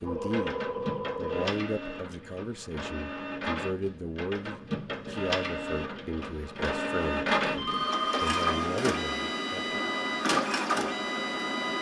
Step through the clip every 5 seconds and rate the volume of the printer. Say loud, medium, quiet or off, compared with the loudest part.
medium, loud, loud.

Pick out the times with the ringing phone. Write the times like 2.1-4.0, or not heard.
0.0-1.6, 7.5-8.7.